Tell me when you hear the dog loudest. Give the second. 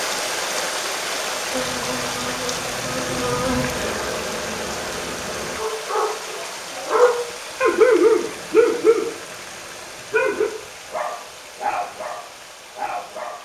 8 s.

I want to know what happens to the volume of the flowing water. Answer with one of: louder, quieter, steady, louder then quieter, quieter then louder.
quieter.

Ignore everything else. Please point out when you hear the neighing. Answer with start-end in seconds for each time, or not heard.
not heard.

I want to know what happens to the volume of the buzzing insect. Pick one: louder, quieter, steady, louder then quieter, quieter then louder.
louder then quieter.